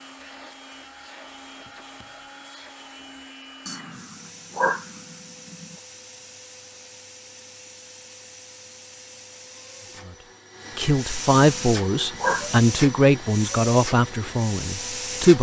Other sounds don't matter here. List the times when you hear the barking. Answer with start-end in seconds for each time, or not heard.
3.6-5.8, 11.3-12.7.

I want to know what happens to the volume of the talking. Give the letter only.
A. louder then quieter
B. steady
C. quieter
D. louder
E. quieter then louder
C.